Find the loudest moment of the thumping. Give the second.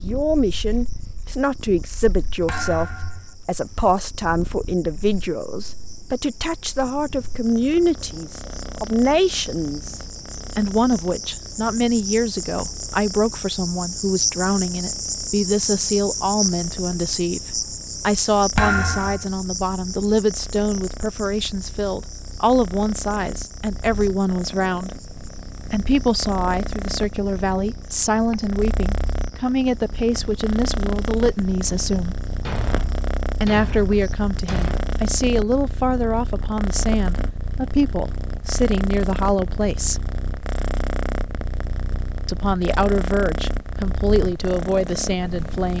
19 s.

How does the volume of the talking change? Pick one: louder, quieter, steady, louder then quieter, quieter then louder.
steady.